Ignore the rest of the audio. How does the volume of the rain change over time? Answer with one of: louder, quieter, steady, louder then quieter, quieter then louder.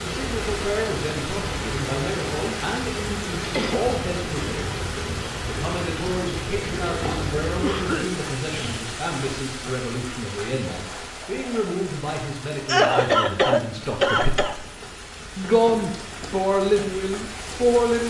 quieter.